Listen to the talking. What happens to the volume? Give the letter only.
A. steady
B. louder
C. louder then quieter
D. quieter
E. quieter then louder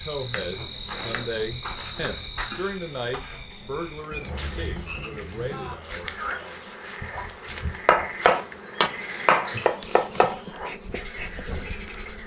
D.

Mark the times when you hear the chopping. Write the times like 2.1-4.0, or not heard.
0.1-2.5, 7.8-10.4.